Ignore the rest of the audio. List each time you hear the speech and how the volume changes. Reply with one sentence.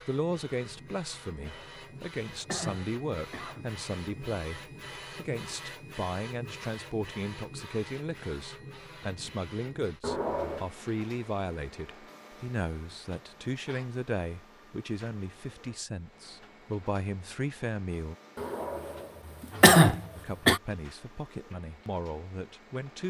The speech can be heard from 0.1 to 18.1 s, at a steady volume; and briefly from 20.1 to 23.0 s.